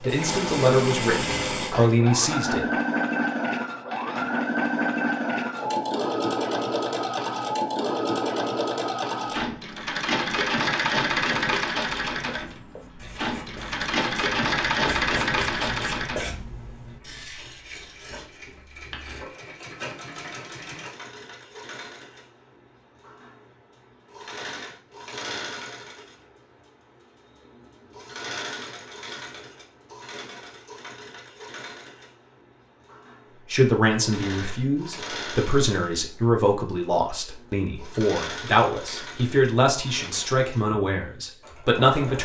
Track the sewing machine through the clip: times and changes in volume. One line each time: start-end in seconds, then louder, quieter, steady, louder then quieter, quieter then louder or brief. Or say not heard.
0.0-42.2 quieter.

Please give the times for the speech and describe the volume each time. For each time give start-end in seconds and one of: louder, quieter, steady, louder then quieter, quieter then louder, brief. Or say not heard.
0.0-2.6 brief
33.5-42.2 steady.